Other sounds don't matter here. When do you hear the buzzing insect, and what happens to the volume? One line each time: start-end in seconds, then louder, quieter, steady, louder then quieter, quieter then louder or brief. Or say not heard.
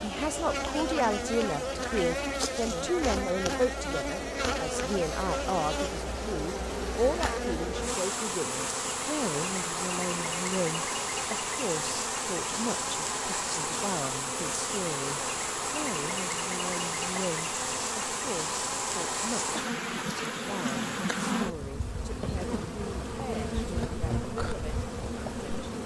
0.0-25.8 steady.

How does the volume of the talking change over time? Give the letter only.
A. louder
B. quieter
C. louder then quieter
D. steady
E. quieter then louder
B.